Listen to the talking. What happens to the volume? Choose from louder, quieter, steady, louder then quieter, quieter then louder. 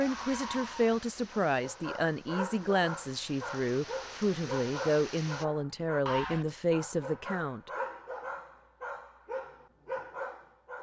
steady.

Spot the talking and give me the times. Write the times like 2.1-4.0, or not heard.
0.0-7.7.